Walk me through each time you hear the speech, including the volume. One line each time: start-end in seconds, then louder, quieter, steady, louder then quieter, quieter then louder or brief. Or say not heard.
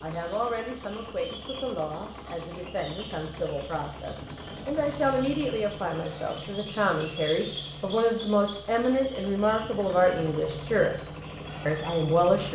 0.0-12.5 louder.